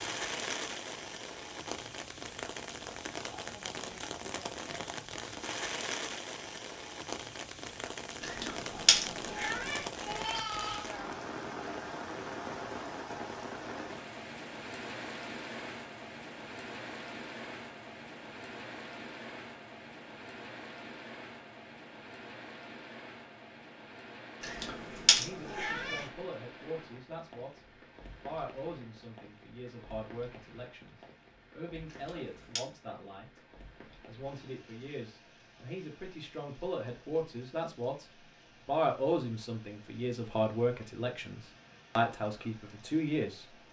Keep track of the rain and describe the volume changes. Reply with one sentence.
The loudness of the rain goes down.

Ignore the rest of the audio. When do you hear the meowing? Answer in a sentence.
You can hear the meowing from 8.2 to 9.8 s, from 24.4 to 26.0 s and from 31.9 to 32.6 s.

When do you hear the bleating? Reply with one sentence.
You can hear the bleating from 9.9 to 11.1 s.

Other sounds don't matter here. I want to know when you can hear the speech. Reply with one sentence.
The speech can be heard from 25.1 to 27.6 s, from 28.2 to 38.0 s and from 38.6 to 43.5 s.